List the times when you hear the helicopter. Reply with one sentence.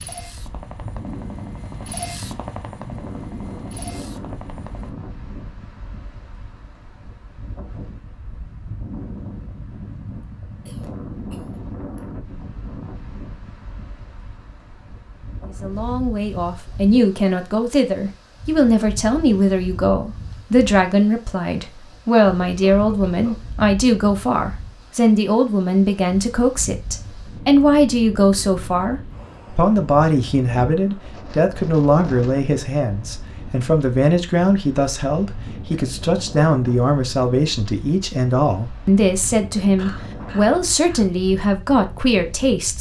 You can hear the helicopter from 0.0 to 4.9 s.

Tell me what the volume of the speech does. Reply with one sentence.
The volume of the speech stays about the same.